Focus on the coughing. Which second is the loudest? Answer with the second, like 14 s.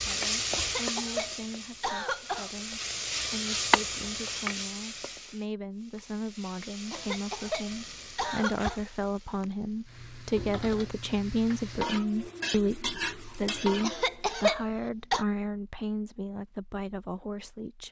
14 s.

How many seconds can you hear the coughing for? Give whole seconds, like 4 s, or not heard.
5 s.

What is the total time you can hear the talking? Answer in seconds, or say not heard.
18 s.